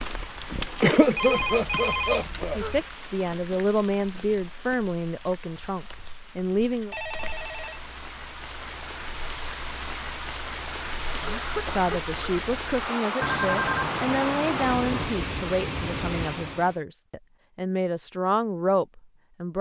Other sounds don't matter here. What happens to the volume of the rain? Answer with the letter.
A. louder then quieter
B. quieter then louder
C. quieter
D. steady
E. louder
B.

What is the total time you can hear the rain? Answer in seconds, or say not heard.
17 s.